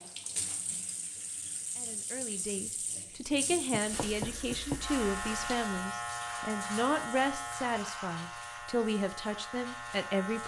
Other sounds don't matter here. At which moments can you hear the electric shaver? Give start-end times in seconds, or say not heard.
4.8-10.4.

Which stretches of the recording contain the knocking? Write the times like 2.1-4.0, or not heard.
3.7-4.8.